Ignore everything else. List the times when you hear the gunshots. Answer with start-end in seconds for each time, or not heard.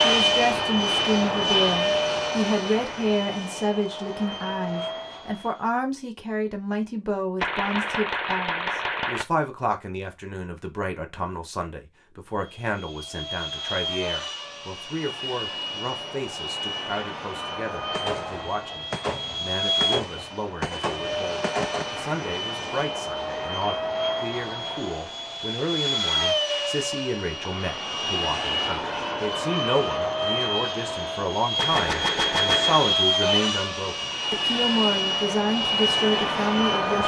7.4-9.2, 17.9-21.9, 31.6-32.9.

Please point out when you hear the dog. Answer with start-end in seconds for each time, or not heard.
not heard.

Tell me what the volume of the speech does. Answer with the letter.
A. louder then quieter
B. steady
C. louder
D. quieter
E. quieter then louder
E.